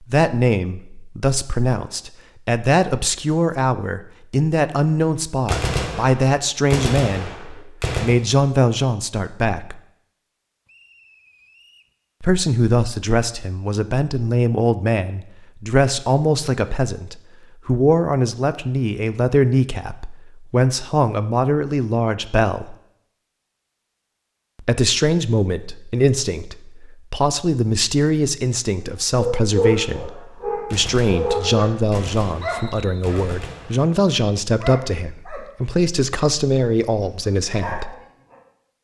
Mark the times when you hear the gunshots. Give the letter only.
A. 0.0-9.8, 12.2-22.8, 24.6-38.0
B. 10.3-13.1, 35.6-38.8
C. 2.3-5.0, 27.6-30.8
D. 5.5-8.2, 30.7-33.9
D.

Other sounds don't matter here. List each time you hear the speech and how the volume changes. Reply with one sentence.
You can hear the speech from 0.0 to 9.8 s, at a steady volume; from 12.2 to 22.8 s, at a steady volume; and from 24.6 to 38.0 s, at a steady volume.